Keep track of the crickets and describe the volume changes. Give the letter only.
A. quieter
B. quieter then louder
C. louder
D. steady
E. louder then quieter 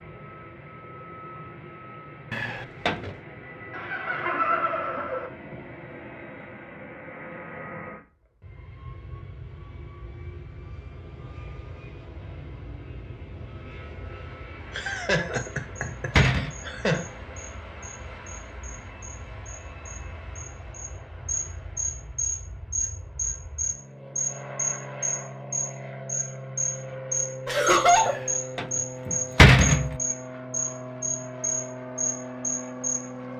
C.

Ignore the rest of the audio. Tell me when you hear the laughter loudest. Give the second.
28 s.